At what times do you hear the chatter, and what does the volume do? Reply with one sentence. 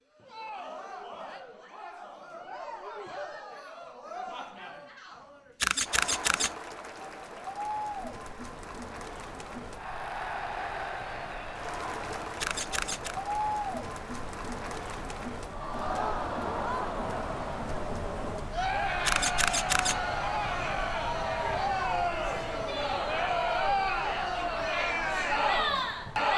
The chatter can be heard from 0.1 to 26.3 s, getting louder.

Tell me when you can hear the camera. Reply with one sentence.
You can hear the camera from 5.6 to 6.5 s, from 12.4 to 13.2 s and from 19.1 to 19.9 s.